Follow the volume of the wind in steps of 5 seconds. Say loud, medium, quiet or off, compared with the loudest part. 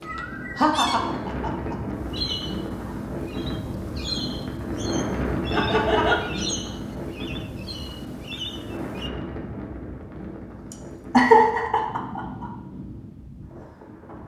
loud, loud, medium.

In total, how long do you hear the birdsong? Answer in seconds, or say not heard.
9 s.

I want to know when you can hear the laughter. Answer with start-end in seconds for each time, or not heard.
0.6-1.8, 5.5-6.2, 11.1-12.4.